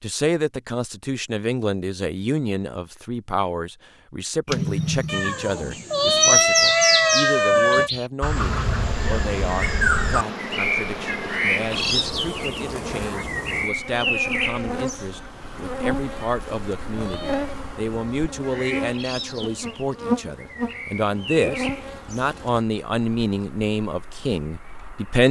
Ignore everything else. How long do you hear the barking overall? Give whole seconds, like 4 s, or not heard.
not heard.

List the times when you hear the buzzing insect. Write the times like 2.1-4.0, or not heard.
8.3-22.6.